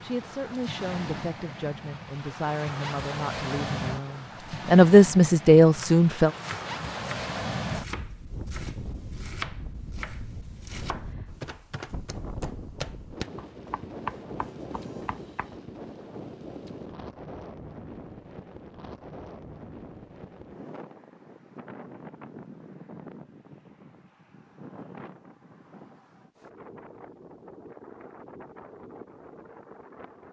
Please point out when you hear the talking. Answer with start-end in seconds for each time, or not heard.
0.0-6.3.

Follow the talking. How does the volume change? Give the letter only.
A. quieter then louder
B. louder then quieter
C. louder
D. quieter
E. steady
C.